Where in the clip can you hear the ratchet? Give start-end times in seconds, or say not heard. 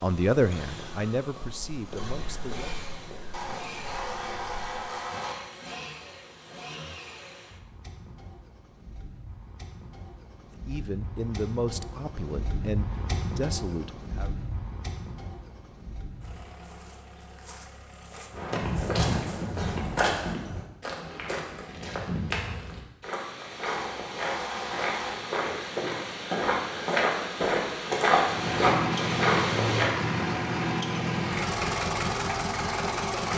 3.3-5.3, 23.6-25.1.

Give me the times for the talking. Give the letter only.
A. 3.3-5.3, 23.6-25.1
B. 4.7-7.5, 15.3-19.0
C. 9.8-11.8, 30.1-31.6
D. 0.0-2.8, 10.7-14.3
D.